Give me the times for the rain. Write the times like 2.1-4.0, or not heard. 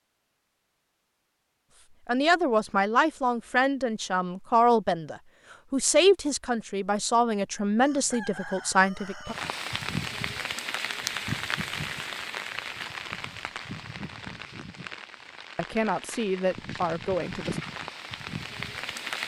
9.2-19.2.